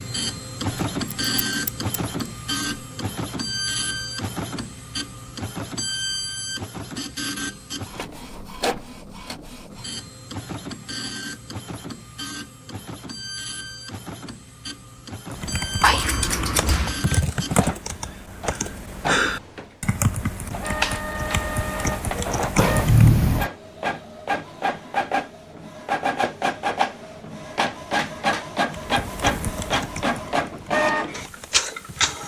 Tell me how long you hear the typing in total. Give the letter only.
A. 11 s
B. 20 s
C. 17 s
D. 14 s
A.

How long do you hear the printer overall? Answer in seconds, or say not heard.
32 s.